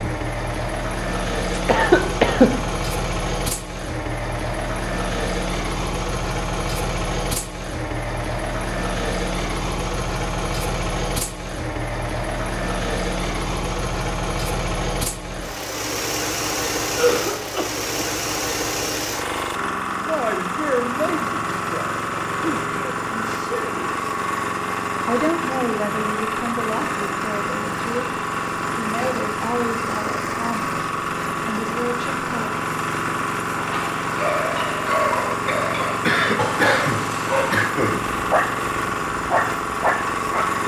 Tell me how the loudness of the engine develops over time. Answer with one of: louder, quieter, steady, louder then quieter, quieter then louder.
steady.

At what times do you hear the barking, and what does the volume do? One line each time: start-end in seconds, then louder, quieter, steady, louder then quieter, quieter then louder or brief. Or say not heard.
33.5-40.5 steady.